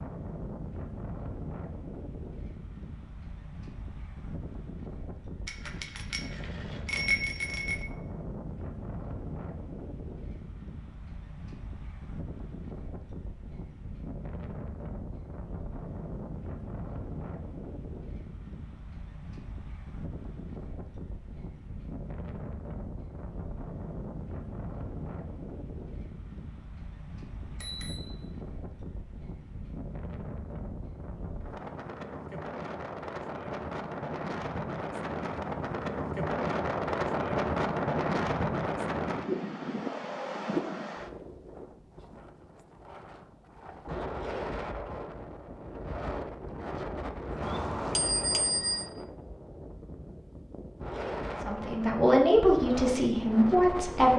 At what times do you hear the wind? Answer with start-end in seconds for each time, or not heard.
0.0-54.1.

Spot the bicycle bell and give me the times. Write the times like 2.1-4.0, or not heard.
5.5-7.8, 27.4-28.1, 47.4-48.9.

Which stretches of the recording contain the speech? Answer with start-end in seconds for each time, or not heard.
51.4-54.1.